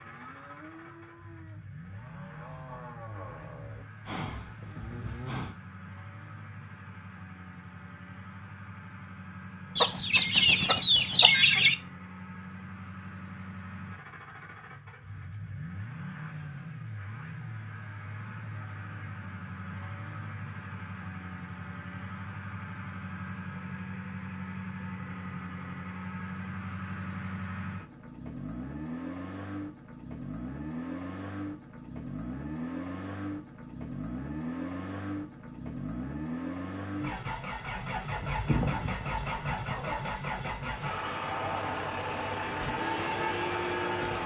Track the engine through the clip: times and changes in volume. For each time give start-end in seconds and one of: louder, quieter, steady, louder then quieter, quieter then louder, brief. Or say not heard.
0.0-44.2 louder.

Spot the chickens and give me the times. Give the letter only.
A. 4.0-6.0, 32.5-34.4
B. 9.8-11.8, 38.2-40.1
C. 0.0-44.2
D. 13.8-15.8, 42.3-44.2
B.